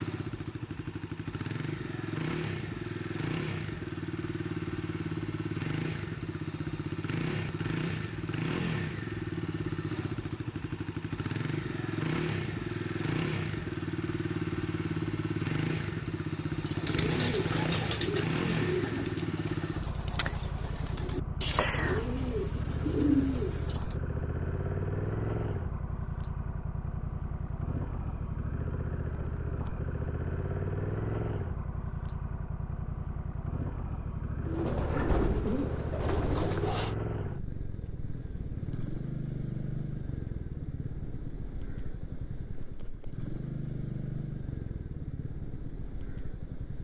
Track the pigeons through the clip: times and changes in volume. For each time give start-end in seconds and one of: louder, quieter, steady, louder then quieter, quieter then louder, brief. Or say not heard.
16.4-23.9 quieter then louder
34.4-37.0 brief.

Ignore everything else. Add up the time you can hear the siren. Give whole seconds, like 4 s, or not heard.
not heard.